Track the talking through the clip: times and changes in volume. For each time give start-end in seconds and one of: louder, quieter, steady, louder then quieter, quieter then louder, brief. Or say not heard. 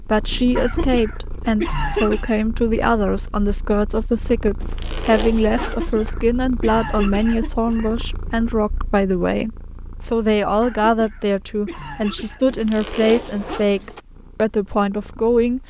0.0-15.6 steady.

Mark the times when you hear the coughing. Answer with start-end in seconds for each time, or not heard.
0.6-2.4, 5.5-8.3, 10.6-12.4.